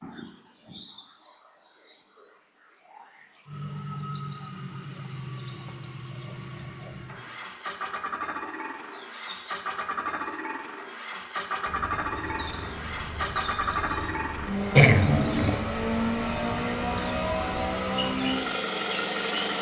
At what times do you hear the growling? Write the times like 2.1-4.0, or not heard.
14.8-15.6.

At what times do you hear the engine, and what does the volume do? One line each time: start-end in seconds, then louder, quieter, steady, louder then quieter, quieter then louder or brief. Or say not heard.
3.5-19.5 louder.